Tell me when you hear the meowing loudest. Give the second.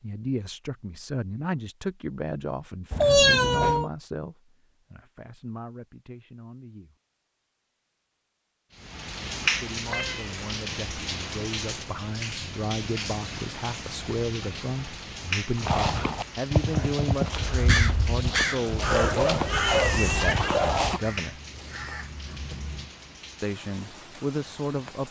3 s.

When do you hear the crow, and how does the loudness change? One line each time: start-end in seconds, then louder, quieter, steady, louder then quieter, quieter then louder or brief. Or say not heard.
17.6-22.9 quieter.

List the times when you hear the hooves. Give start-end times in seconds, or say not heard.
15.6-21.0.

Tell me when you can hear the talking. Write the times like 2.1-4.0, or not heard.
0.0-7.0, 9.4-21.4, 23.4-25.0.